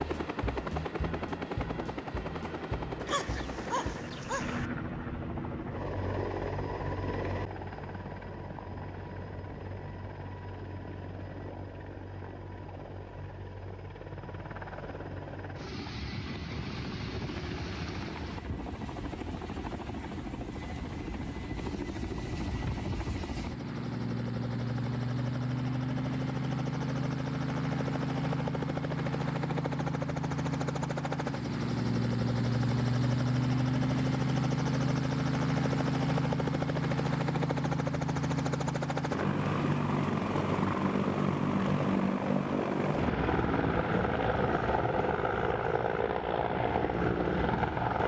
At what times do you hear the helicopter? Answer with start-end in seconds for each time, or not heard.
0.0-48.0.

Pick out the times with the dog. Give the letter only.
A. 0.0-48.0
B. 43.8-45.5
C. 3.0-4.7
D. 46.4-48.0
C.